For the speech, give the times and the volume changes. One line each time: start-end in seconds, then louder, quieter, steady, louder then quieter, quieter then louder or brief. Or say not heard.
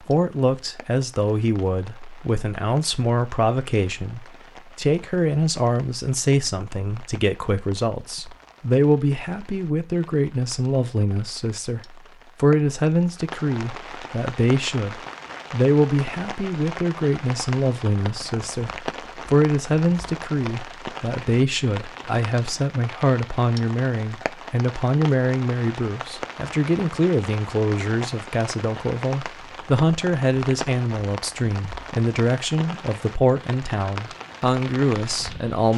0.1-35.7 steady.